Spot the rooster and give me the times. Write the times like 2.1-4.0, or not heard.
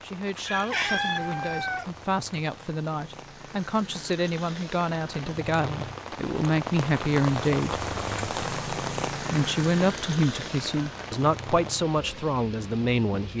0.3-1.2.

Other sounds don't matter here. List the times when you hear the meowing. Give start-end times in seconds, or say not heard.
0.7-1.9.